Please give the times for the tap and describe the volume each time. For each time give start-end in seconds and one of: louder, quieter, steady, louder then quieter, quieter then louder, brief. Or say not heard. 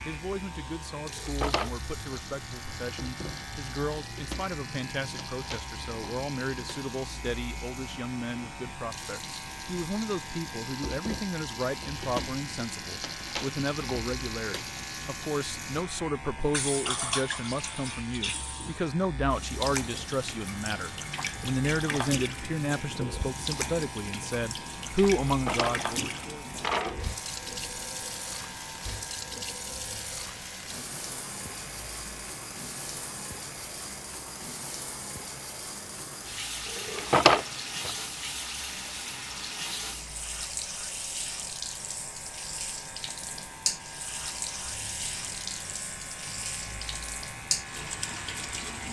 0.0-48.8 louder.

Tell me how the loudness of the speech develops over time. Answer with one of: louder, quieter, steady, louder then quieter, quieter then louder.
louder.